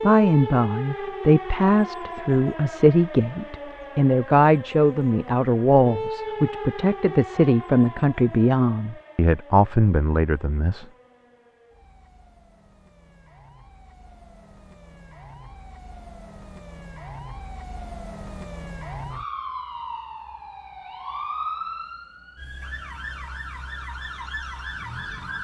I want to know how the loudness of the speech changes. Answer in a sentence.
The volume of the speech stays about the same.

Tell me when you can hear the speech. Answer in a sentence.
The speech can be heard from 0.0 to 10.8 s.